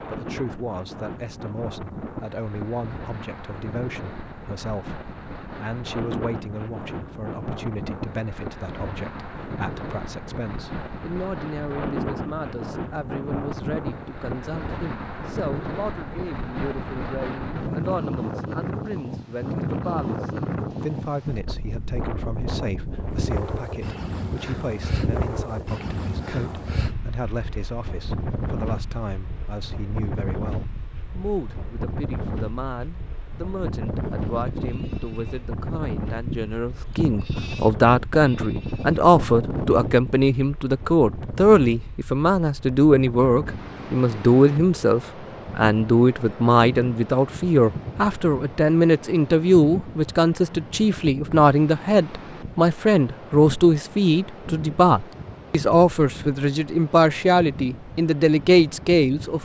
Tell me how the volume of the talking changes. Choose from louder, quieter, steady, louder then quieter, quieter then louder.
louder.